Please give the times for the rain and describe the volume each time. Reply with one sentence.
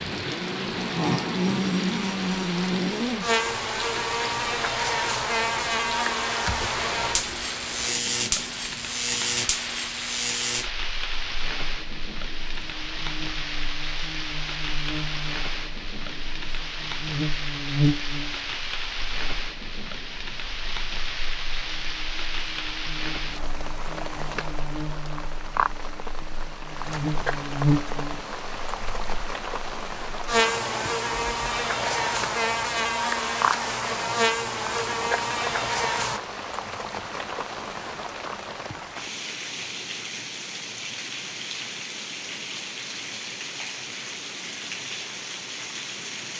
You can hear the rain from 0.0 to 46.3 s, at a steady volume.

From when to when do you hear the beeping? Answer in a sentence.
The beeping can't be heard in this clip.